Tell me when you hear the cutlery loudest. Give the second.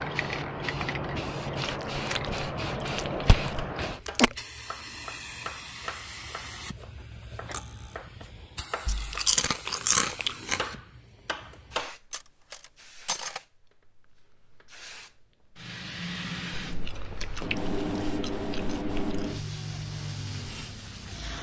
13 s.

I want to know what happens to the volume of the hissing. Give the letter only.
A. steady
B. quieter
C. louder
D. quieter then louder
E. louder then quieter
D.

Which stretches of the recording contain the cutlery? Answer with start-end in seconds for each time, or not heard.
7.5-8.0, 12.1-13.4.